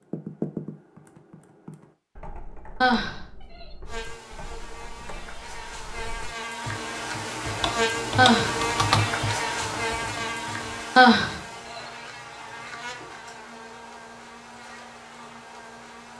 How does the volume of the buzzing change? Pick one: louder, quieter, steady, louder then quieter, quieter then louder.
louder then quieter.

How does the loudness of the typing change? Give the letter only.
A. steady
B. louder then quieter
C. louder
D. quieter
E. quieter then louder
E.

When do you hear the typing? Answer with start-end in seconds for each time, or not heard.
0.0-11.0.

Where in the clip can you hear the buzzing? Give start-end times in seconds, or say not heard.
3.9-16.1.